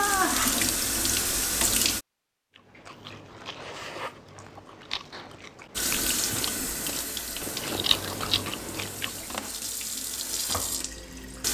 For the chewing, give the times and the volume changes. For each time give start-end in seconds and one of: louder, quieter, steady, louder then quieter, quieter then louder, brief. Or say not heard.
2.5-9.4 louder.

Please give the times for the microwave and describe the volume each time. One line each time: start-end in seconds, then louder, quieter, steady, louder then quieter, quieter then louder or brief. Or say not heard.
not heard.